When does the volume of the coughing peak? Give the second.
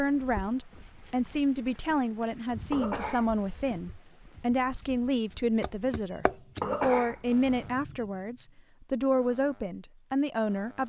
7 s.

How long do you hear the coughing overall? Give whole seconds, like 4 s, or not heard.
2 s.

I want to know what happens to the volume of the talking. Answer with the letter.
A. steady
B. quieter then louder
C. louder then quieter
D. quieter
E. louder
A.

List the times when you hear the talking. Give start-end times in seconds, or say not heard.
0.0-10.8.